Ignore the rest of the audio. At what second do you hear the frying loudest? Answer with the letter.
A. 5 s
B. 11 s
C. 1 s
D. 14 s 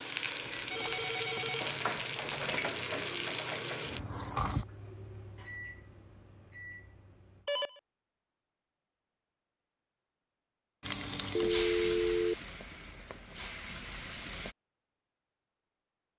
B.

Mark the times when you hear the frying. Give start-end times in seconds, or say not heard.
0.0-4.7, 10.8-14.6.